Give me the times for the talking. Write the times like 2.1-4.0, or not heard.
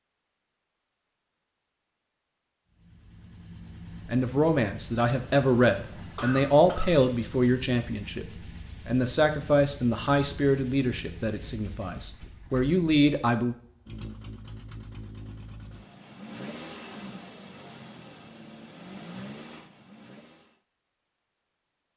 4.0-8.2, 8.8-13.6.